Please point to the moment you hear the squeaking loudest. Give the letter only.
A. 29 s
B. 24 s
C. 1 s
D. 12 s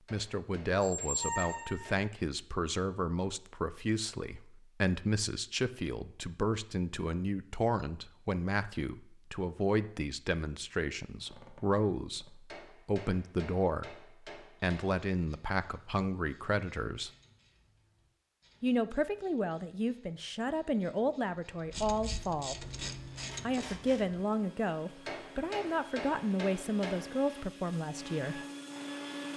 C.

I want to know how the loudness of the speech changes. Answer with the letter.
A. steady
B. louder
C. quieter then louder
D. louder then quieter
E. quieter
A.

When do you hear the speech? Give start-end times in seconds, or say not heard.
0.1-17.1, 18.6-22.6, 23.4-28.4.